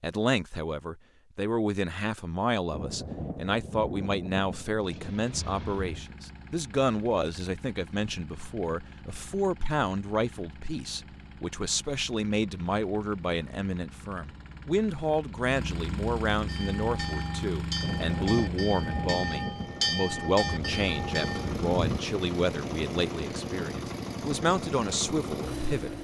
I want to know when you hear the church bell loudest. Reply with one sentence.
The volume of the church bell peaks at 20 seconds.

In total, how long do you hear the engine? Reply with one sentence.
You can hear the engine for 21 seconds altogether.